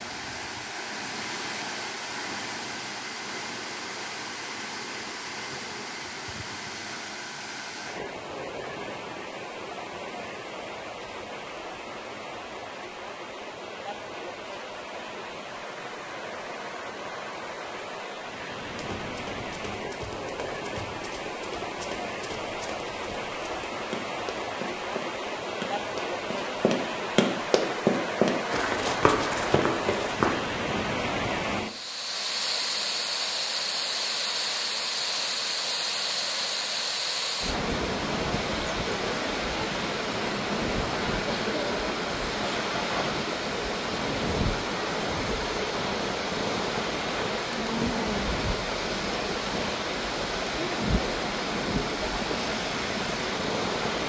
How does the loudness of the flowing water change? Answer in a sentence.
The loudness of the flowing water goes up.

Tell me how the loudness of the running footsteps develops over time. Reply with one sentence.
The loudness of the running footsteps goes up.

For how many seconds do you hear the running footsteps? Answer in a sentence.
The running footsteps can be heard for 12 seconds in total.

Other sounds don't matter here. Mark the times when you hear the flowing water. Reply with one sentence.
You can hear the flowing water from 0.0 to 54.0 s.